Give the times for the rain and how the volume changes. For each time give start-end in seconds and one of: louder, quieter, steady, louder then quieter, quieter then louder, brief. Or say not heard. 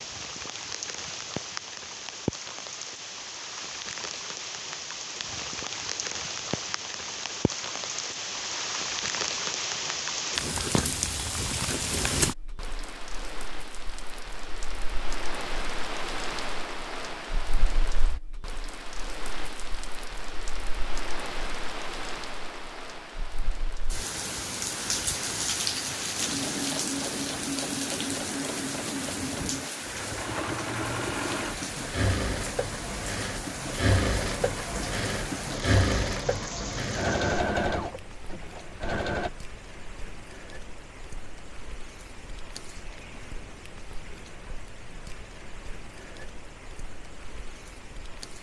0.0-48.3 quieter.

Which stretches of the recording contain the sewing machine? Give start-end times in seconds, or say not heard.
26.1-39.3.